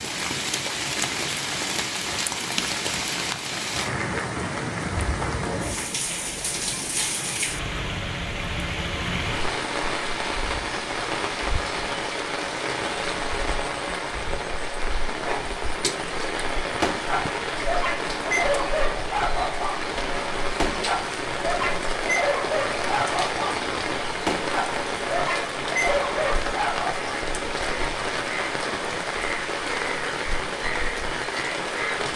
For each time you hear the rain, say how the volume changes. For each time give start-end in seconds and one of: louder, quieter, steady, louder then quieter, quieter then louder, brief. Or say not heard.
0.0-32.1 steady.